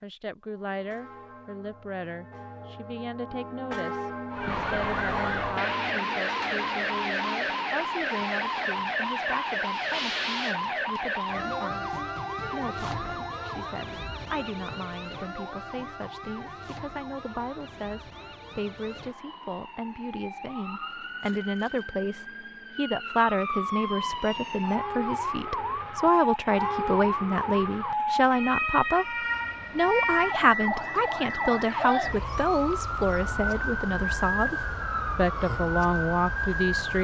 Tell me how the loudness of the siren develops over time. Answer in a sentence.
The loudness of the siren goes down, then up.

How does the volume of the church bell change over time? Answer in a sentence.
The volume of the church bell goes up.